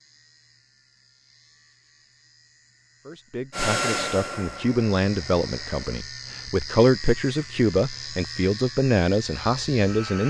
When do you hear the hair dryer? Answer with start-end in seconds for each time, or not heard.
3.5-6.0.